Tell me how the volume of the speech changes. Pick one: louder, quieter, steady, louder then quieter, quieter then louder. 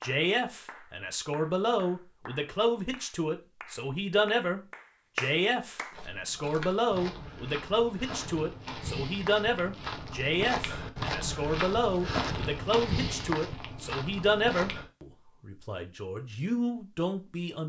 steady.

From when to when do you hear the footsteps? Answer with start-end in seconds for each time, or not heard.
5.9-14.9.